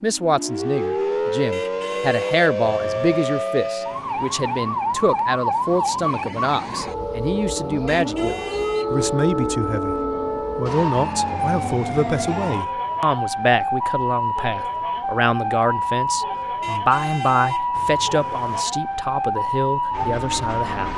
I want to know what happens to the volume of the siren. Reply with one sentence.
The volume of the siren stays about the same.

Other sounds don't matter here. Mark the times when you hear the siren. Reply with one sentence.
You can hear the siren from 0.0 to 20.9 s.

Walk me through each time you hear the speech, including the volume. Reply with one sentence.
The speech can be heard from 0.0 to 20.9 s, at a steady volume.